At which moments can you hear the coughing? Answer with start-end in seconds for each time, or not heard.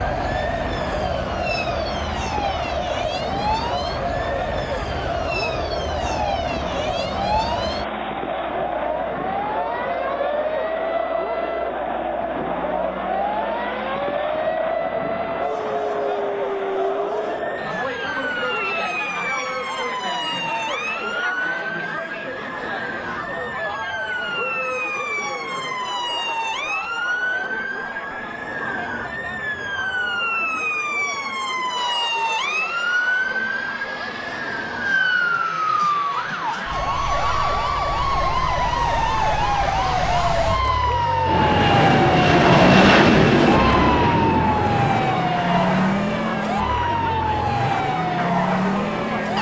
not heard.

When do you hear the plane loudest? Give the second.
43 s.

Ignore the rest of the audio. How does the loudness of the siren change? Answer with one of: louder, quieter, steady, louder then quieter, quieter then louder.
louder.